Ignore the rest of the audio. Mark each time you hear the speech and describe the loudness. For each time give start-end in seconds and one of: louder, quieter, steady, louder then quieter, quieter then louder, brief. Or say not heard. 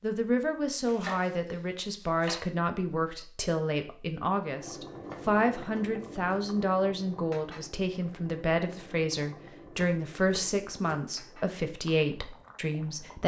0.0-13.2 steady.